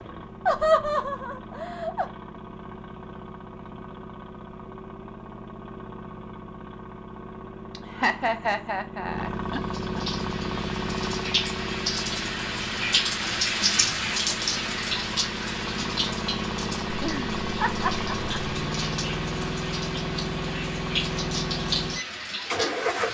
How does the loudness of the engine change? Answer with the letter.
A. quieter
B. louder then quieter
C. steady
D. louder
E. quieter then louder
D.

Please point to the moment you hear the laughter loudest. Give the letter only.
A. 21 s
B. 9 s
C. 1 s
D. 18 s
C.